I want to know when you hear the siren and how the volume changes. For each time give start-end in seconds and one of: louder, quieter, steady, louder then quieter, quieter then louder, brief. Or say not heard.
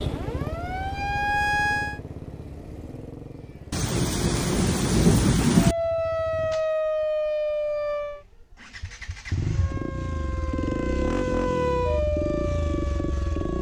0.0-2.0 brief
5.5-8.2 brief
9.4-13.5 louder then quieter.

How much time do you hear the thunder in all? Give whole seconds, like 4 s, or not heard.
2 s.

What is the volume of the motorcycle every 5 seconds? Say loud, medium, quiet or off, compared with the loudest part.
medium, medium, loud.